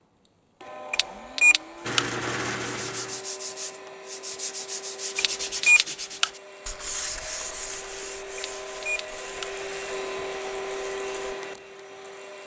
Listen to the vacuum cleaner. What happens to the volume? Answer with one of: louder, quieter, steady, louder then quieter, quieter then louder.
louder.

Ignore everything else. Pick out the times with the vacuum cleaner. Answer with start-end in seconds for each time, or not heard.
0.0-12.4.